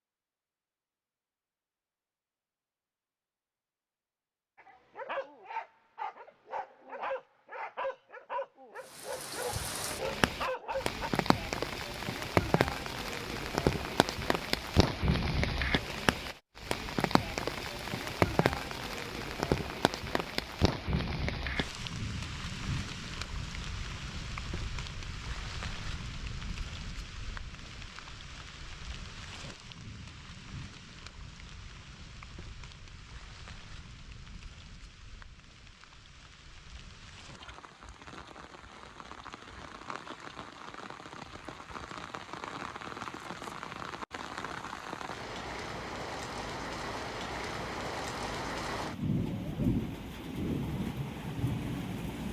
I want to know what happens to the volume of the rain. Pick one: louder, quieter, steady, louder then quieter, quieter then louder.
quieter then louder.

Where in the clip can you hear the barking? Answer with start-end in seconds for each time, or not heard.
4.5-11.1.